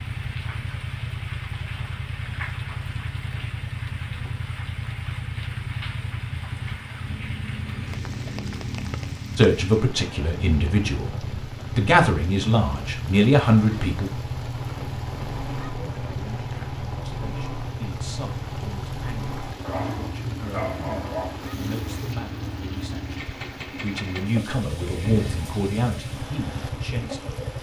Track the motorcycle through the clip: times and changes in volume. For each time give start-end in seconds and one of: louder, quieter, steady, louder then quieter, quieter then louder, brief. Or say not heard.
0.0-27.5 steady.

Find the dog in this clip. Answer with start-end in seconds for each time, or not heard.
19.6-21.4.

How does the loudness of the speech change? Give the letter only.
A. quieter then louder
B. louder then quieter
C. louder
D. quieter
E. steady
A.